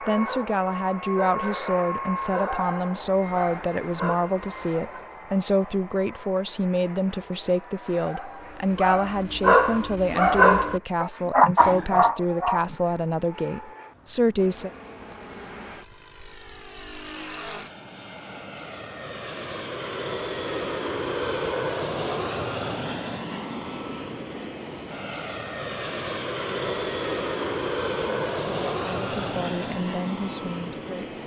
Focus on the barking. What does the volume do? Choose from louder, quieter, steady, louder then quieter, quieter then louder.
louder.